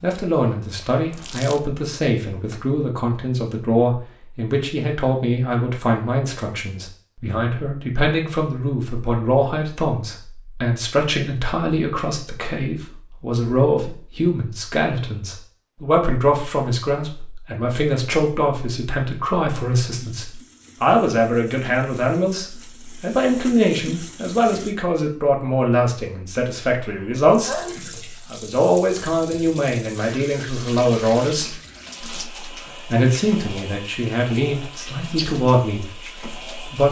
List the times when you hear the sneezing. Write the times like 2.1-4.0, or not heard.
26.9-28.0.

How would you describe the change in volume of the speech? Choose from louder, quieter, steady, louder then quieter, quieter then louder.
steady.